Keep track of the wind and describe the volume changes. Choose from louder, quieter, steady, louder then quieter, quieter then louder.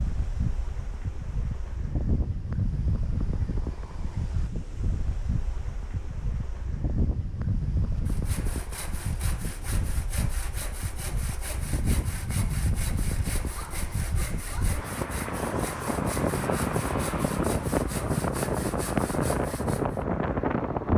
louder.